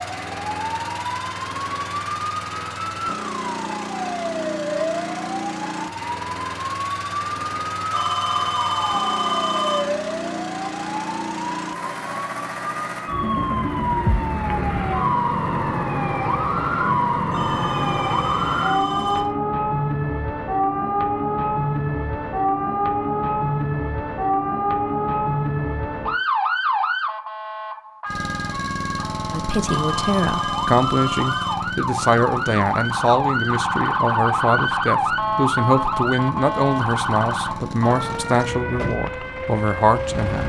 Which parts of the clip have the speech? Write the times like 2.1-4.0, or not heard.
29.3-40.4.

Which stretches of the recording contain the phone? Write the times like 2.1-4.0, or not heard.
7.9-9.8, 17.3-19.2, 29.6-31.6.